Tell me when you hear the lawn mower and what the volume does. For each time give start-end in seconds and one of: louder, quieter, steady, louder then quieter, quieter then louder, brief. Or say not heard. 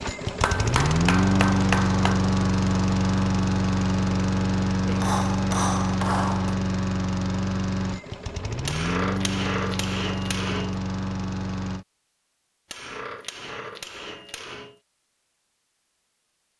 0.0-11.8 quieter.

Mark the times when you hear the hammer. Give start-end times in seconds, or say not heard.
0.4-2.2, 4.8-6.5, 8.7-10.8, 12.7-14.8.